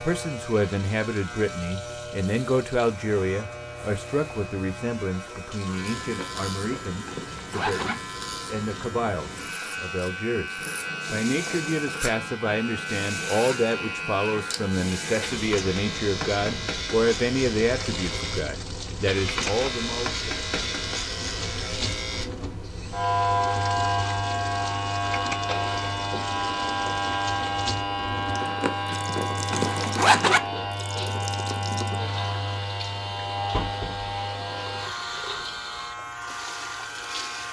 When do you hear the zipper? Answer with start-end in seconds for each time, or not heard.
6.0-8.0, 28.4-30.4.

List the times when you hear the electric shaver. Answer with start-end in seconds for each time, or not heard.
0.0-37.4.